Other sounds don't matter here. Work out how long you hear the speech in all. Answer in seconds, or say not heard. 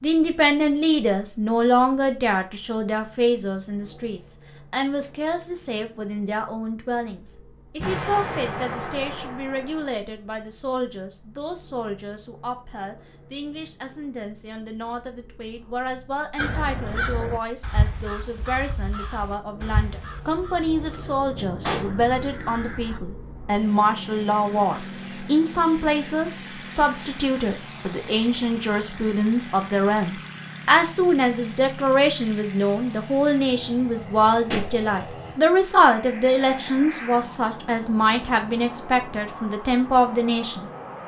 41 s.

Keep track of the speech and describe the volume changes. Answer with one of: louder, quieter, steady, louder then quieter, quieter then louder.
quieter then louder.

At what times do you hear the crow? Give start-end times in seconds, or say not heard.
16.4-23.0.